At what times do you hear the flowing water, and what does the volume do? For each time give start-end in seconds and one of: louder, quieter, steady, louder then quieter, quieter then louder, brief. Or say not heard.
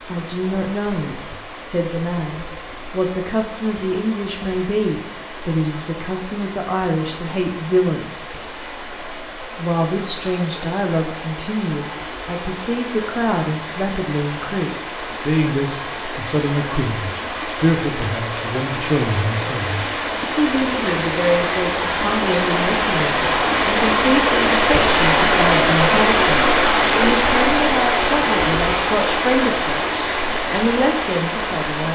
0.0-31.8 louder.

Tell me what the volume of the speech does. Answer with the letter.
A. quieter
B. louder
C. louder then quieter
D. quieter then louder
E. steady
E.